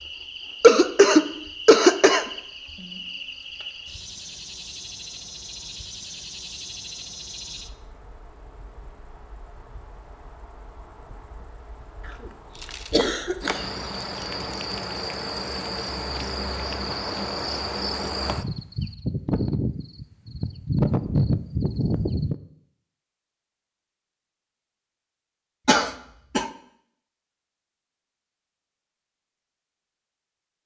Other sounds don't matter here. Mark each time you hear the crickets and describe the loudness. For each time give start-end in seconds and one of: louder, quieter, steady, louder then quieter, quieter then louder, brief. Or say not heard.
0.0-22.4 quieter then louder.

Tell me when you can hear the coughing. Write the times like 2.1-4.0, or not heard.
0.6-2.2, 12.1-13.7, 25.6-26.5.